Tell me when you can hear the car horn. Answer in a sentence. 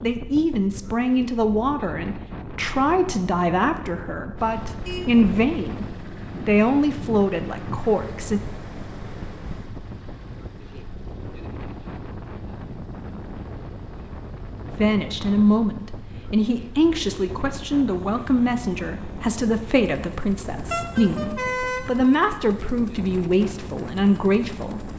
The car horn can be heard from 4.7 to 5.5 s and from 20.7 to 22.1 s.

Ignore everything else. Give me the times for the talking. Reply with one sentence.
You can hear the talking from 0.0 to 8.4 s and from 14.8 to 24.9 s.